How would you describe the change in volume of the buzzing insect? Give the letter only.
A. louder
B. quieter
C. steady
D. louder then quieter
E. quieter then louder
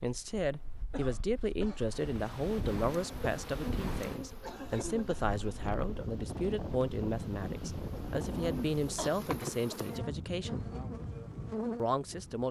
E.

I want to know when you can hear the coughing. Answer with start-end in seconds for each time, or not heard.
0.9-1.9, 4.4-5.3, 8.9-9.8.